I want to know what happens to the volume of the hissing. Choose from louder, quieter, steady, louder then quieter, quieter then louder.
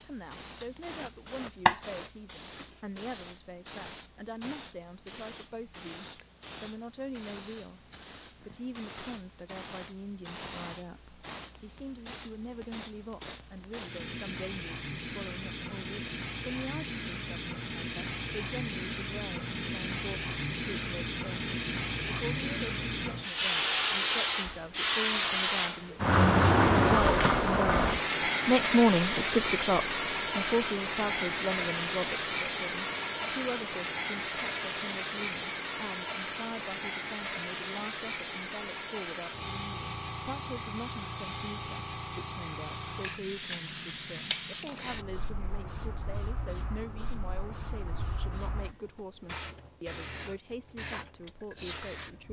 louder then quieter.